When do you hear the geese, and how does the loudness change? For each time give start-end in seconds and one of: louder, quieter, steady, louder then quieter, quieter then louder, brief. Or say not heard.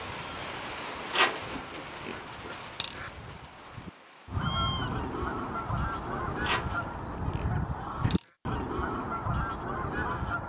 0.0-10.4 louder.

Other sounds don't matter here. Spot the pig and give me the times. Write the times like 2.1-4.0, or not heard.
1.1-3.1, 6.4-8.2.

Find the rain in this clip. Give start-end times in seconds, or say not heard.
0.0-7.0.